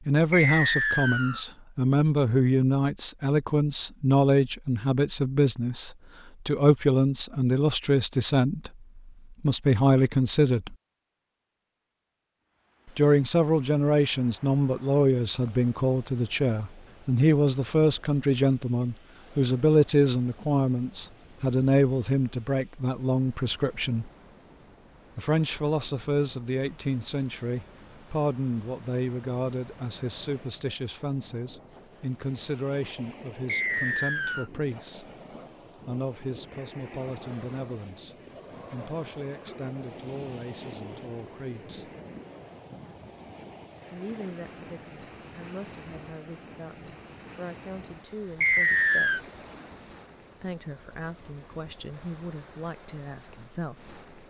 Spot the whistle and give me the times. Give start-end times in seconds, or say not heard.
0.3-1.4, 33.5-34.5, 48.4-49.2.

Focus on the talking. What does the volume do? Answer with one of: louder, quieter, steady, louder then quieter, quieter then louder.
quieter.